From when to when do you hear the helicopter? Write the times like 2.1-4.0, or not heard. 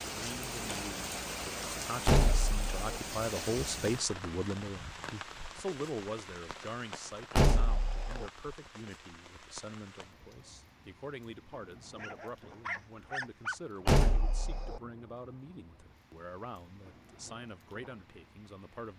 not heard.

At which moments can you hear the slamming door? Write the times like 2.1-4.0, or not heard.
2.0-3.0, 7.3-8.3, 13.8-14.8.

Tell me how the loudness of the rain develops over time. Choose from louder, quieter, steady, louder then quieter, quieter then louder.
quieter.